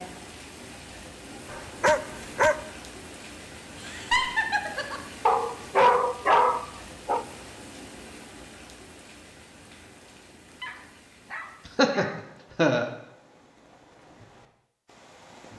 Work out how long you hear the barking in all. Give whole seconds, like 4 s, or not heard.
5 s.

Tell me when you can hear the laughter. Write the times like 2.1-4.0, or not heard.
3.8-5.0, 11.7-12.9.